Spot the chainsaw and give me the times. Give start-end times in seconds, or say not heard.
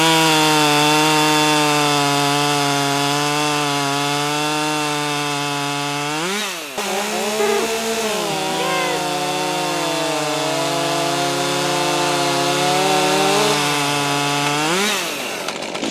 0.0-15.8.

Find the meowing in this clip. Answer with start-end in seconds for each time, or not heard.
7.3-9.1.